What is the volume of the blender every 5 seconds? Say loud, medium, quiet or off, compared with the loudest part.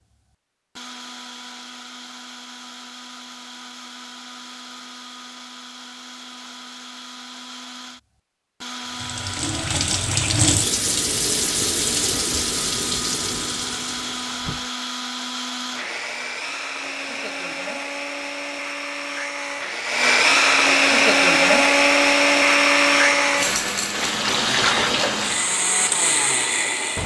quiet, quiet, quiet, quiet, loud, medium.